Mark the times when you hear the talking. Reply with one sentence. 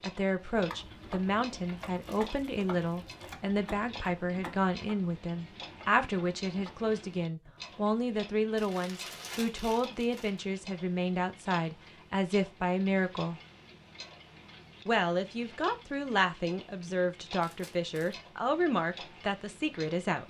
You can hear the talking from 0.0 to 13.4 s and from 14.8 to 20.2 s.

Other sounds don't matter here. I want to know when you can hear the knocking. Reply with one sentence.
The knocking can't be heard in this clip.